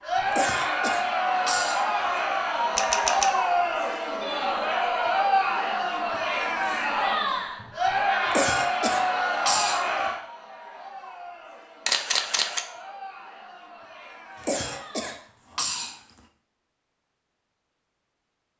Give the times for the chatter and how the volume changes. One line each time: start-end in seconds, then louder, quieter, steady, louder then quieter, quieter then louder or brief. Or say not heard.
0.0-15.7 quieter.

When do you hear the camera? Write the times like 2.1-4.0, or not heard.
2.8-3.4, 11.8-12.7.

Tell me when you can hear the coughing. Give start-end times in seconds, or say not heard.
0.3-2.1, 8.2-10.1, 14.4-16.2.